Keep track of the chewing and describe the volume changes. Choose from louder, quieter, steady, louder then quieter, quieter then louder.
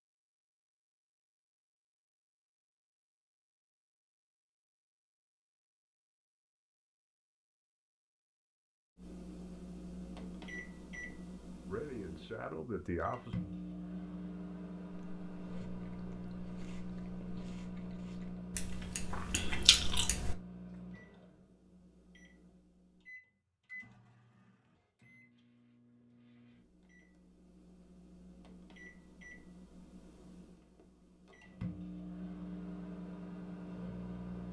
louder.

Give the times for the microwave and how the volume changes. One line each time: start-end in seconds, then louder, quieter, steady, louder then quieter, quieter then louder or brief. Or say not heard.
8.9-34.4 quieter then louder.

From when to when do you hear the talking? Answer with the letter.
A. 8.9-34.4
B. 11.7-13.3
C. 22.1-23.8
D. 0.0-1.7
B.